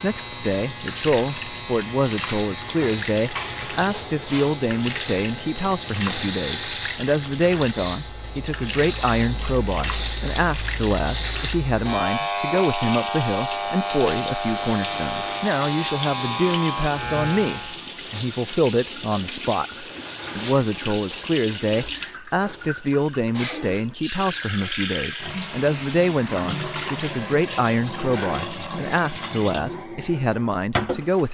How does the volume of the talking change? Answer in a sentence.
The volume of the talking stays about the same.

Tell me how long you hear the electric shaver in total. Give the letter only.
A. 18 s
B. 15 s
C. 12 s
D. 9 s
A.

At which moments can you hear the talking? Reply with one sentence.
The talking can be heard from 0.0 to 31.2 s.